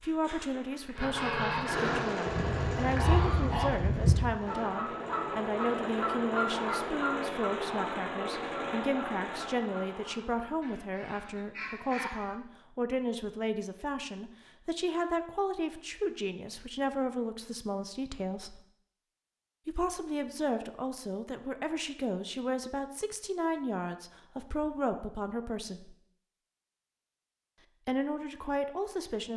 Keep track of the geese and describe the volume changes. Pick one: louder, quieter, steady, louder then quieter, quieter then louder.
quieter.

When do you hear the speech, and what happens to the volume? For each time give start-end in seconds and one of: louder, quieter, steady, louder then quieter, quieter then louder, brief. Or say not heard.
0.0-18.6 steady
19.6-25.9 steady
27.9-29.3 brief.